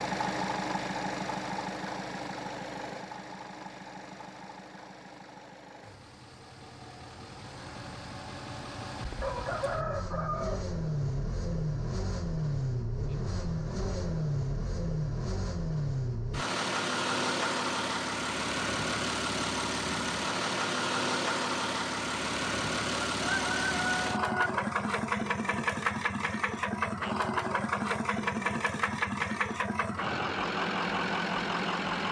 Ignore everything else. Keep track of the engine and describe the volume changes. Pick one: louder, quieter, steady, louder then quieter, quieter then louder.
louder.